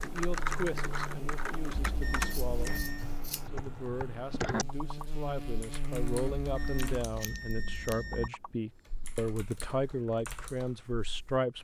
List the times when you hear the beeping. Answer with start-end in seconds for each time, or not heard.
1.8-3.1, 6.3-8.3.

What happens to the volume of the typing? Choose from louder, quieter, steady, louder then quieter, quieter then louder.
quieter.